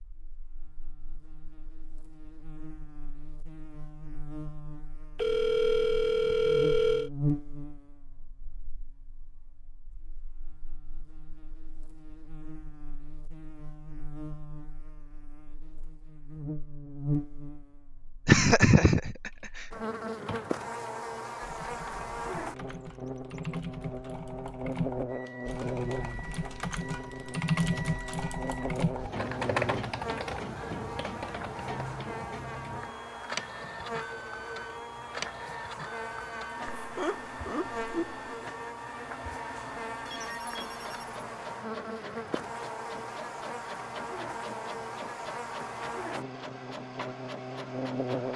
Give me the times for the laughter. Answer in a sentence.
The laughter can be heard from 18.2 to 19.3 s and from 36.8 to 38.2 s.